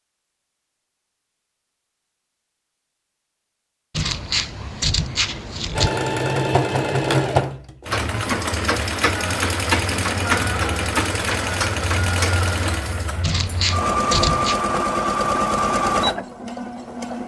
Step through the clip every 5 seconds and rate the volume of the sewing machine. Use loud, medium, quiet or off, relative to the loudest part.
off, loud, loud, loud.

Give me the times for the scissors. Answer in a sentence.
The scissors can be heard from 4.0 to 6.0 s and from 13.2 to 14.6 s.